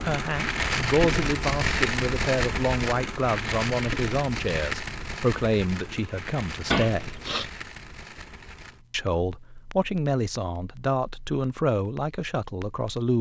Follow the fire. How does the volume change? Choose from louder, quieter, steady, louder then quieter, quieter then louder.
quieter.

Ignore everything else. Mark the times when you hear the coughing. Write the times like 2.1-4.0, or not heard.
6.7-7.5.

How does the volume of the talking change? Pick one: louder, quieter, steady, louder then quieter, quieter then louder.
steady.